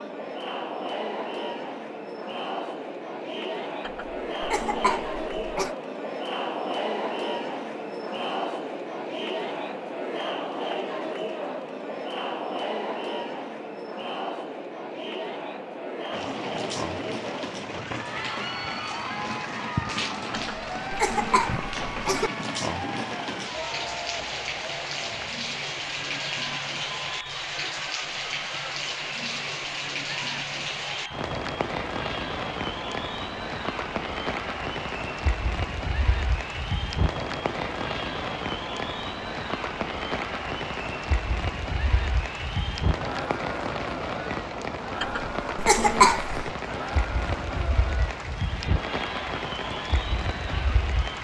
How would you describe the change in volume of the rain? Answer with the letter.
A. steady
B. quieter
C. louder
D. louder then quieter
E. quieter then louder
A.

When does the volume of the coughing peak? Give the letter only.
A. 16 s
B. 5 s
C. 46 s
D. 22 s
C.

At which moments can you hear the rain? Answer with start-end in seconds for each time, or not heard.
16.1-51.1.